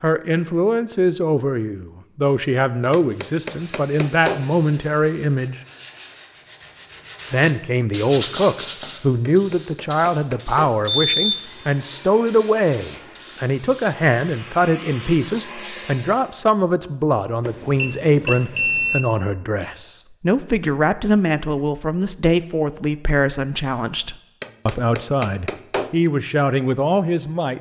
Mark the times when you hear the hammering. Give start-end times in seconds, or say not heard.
2.9-4.5, 9.2-10.8, 24.4-26.0.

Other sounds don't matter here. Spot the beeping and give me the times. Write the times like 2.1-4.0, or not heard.
11.1-11.6, 17.4-19.1.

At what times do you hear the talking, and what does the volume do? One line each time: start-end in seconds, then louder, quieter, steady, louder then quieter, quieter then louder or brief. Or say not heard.
0.0-5.6 steady
7.3-27.5 steady.